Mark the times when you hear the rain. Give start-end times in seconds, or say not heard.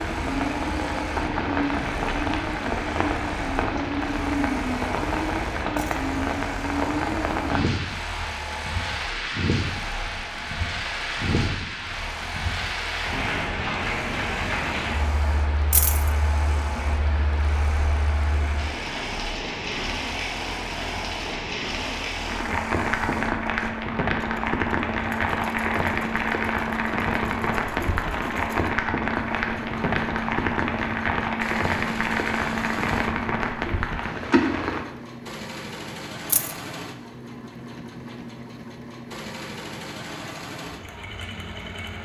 0.0-34.9.